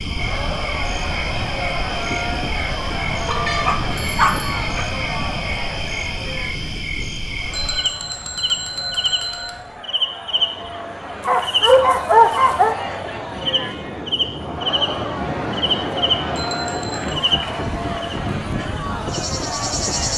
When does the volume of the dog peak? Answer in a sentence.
The loudest moment of the dog is at 12 seconds.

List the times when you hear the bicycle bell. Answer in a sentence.
The bicycle bell can be heard from 3.2 to 4.8 s, from 7.5 to 9.5 s and from 16.4 to 17.1 s.